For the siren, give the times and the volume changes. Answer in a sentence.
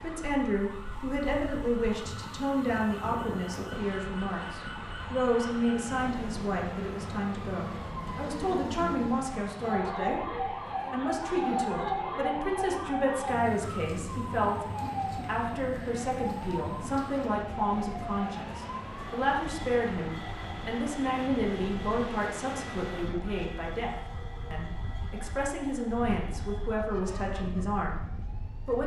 The siren can be heard from 0.0 to 28.8 s, getting louder then quieter.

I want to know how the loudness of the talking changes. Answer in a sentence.
The loudness of the talking stays about the same.